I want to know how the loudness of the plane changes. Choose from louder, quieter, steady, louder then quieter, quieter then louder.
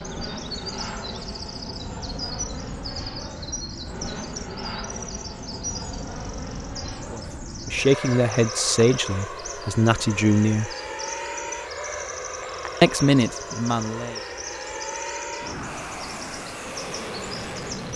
steady.